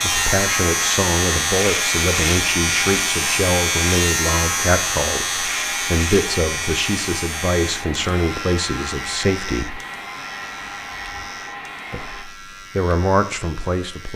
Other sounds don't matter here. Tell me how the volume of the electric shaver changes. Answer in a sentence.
The volume of the electric shaver goes down.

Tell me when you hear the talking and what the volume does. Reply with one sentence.
The talking can be heard from 0.0 to 9.8 s, at a steady volume; and briefly from 11.9 to 14.1 s.